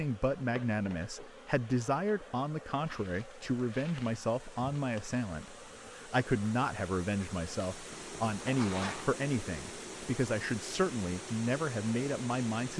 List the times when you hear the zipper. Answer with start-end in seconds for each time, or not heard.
7.9-9.2.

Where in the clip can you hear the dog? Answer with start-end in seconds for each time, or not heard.
not heard.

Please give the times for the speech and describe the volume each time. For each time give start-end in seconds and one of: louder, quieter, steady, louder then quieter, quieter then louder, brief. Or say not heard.
0.0-12.7 steady.